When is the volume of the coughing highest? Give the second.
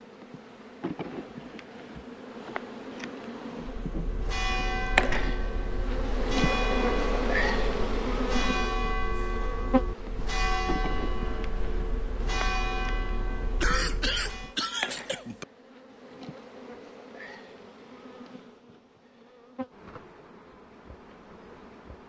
14 s.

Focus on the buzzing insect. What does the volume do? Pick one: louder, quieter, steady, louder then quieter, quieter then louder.
louder then quieter.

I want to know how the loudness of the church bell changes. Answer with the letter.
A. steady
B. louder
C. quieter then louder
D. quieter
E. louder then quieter
A.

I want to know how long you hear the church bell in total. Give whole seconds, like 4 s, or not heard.
11 s.